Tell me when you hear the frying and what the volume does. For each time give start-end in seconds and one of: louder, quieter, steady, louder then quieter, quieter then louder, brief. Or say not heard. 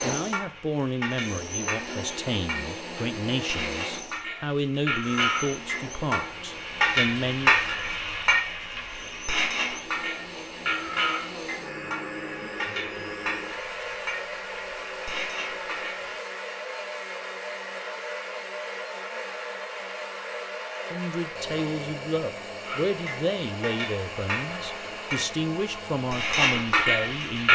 0.1-16.2 louder then quieter
22.6-27.5 louder.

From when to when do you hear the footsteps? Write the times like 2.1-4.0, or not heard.
not heard.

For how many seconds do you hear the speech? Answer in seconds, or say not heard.
14 s.